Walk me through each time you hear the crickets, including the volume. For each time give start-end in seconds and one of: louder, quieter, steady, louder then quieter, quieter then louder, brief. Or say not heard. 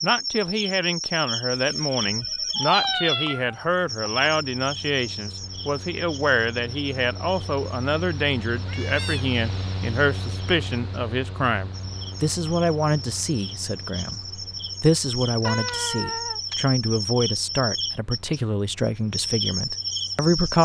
0.0-20.5 quieter then louder.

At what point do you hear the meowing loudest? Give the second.
3 s.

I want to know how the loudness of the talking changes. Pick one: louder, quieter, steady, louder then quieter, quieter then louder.
steady.